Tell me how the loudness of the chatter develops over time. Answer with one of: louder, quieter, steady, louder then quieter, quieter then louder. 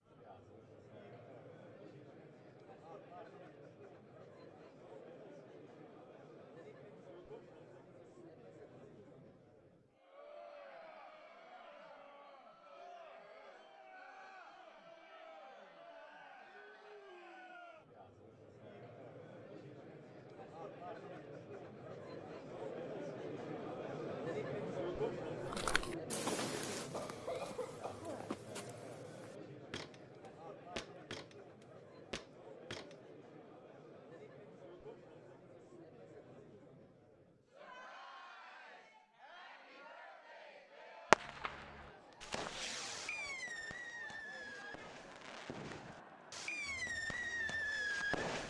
louder then quieter.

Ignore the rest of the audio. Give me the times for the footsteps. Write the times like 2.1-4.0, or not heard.
25.4-33.0.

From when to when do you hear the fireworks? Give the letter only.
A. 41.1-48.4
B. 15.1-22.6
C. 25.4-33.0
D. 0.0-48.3
A.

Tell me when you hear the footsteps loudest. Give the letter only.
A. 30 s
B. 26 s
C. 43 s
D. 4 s
B.